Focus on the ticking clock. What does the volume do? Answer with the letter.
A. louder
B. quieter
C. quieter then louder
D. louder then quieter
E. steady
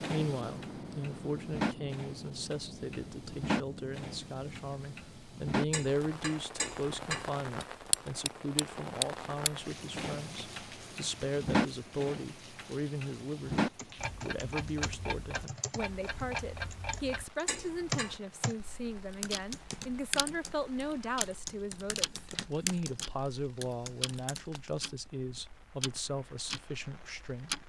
B.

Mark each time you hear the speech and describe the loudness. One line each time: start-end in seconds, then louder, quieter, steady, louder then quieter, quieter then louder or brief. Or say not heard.
0.0-27.6 steady.